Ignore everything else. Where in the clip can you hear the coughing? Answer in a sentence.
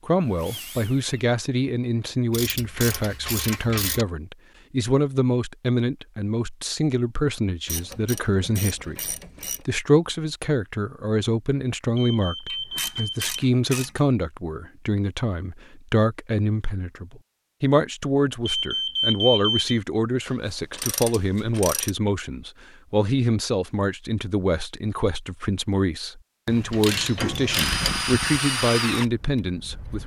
The coughing can't be heard in this clip.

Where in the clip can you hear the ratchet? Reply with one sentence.
The ratchet can be heard from 2.3 to 4.0 s, from 7.7 to 9.7 s, from 12.4 to 14.1 s, from 20.2 to 21.9 s and from 26.4 to 28.1 s.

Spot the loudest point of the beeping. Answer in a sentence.
The volume of the beeping peaks at 19 seconds.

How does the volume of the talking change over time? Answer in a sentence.
The loudness of the talking stays about the same.